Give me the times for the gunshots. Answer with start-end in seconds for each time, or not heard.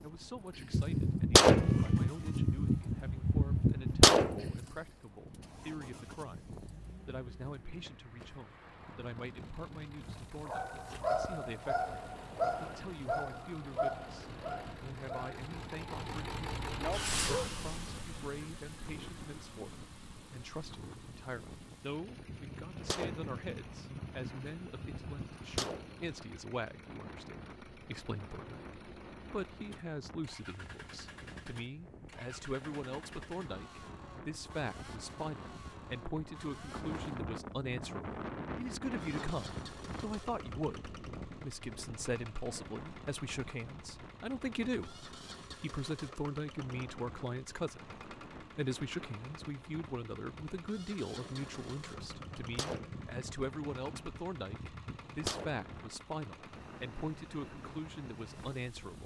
0.7-4.7, 22.2-26.1, 52.0-55.6.